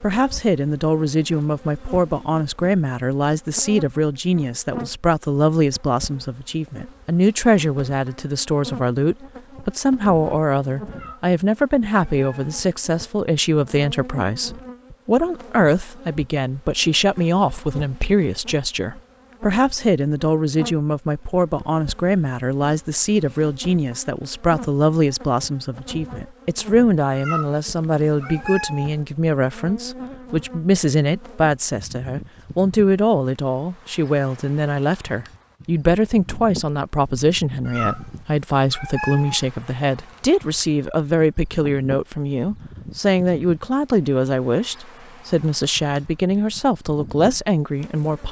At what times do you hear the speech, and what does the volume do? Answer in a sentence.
You can hear the speech from 0.0 to 48.2 s, at a steady volume.